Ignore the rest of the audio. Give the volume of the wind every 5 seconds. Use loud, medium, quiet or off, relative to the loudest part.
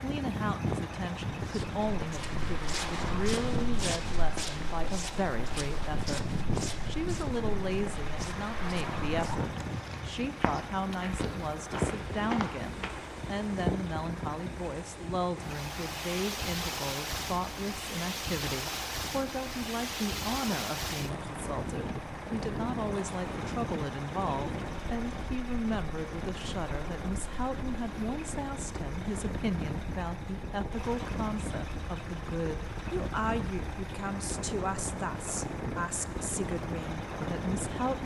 loud, loud, loud, loud, loud, medium, loud, loud.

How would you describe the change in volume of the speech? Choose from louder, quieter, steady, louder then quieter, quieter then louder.
steady.